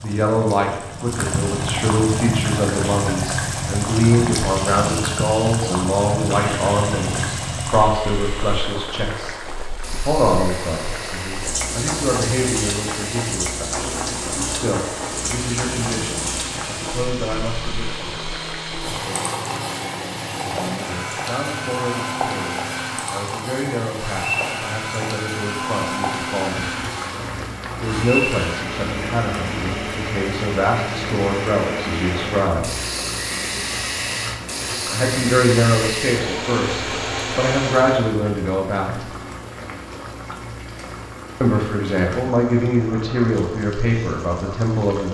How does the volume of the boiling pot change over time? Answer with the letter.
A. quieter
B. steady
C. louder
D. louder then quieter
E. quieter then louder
A.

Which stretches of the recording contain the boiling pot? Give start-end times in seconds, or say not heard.
0.0-45.0.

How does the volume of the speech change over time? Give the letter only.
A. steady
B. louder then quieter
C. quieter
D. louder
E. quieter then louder
E.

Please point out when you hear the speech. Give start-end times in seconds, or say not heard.
0.0-9.3, 10.1-18.2, 20.4-26.7, 27.8-32.7, 34.9-39.0, 41.4-45.0.